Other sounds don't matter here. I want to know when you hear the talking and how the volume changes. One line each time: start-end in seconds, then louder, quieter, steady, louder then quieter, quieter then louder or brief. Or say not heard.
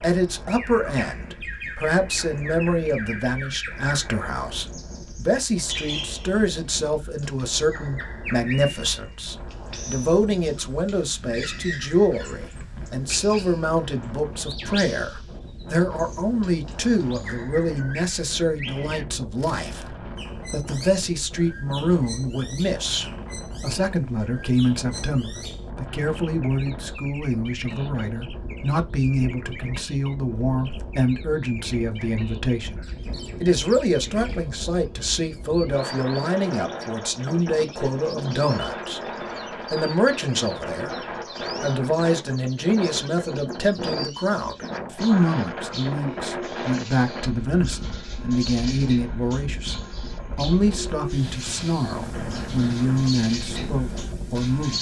0.0-39.0 steady
39.7-54.7 steady.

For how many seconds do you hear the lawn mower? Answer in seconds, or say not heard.
not heard.